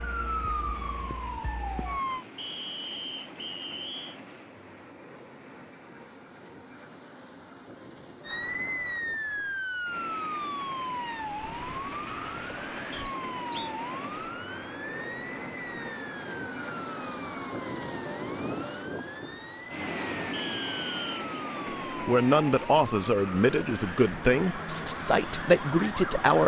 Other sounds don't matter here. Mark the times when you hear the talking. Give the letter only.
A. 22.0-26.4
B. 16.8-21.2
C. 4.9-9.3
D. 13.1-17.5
A.